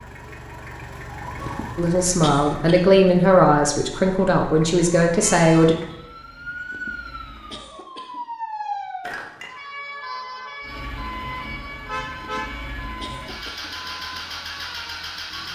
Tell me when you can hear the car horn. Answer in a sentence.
The car horn can be heard from 11.8 to 12.8 s.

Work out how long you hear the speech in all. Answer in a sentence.
You can hear the speech for 4 seconds altogether.